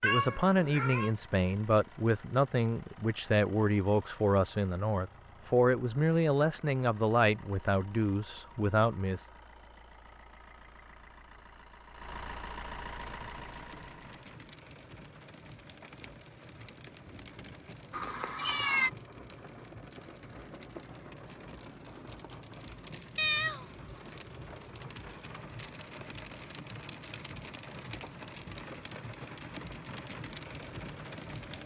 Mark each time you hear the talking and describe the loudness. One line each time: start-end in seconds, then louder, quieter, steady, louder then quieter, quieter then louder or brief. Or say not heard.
0.0-9.2 steady.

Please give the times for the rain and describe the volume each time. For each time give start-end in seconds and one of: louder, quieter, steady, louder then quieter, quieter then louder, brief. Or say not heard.
13.0-31.6 louder.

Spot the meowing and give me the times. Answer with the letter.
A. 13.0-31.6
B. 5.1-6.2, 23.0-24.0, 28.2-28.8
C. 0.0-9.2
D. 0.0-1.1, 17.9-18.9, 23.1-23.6
D.